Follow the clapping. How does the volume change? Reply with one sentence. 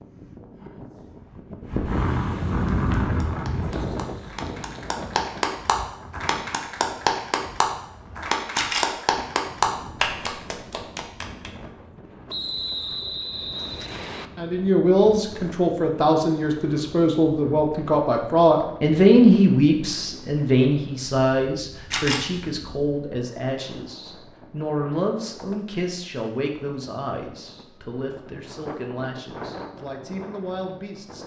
The volume of the clapping goes up.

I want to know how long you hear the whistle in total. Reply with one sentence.
You can hear the whistle for 2 seconds altogether.